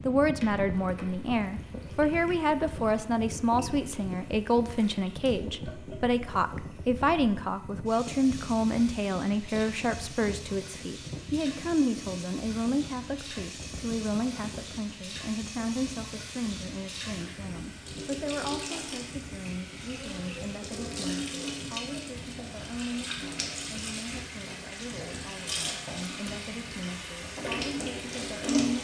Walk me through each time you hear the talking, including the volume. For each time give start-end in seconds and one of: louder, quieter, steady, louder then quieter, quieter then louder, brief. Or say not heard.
0.0-28.7 quieter.